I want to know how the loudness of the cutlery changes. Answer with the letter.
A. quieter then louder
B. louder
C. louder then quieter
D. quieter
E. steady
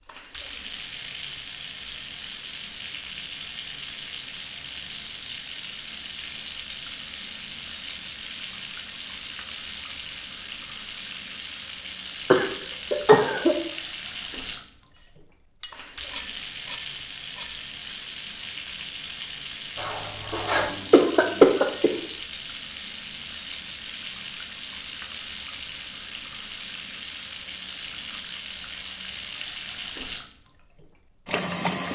D.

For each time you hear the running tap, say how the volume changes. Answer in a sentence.
The running tap can be heard from 0.0 to 31.8 s, at a steady volume.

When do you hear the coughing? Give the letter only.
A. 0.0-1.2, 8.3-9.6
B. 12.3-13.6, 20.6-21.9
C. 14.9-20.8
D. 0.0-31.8
B.